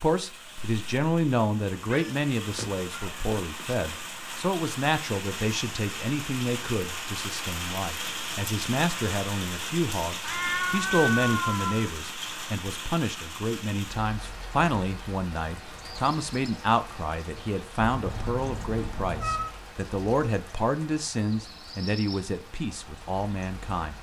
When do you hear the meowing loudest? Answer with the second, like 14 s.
11 s.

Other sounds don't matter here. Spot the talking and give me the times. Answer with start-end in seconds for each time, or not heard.
0.0-23.9.